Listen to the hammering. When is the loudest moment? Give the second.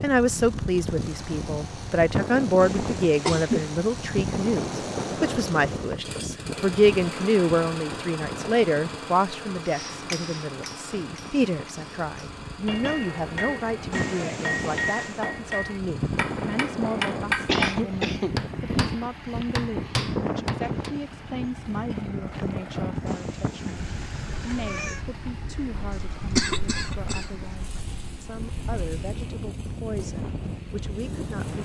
17 s.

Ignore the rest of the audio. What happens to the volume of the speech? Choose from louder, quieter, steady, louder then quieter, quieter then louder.
quieter.